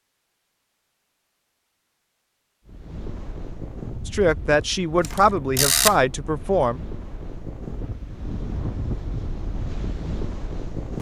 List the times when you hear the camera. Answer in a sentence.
You can hear the camera from 5.0 to 6.0 s.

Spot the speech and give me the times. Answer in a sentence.
The speech can be heard from 4.0 to 6.8 s.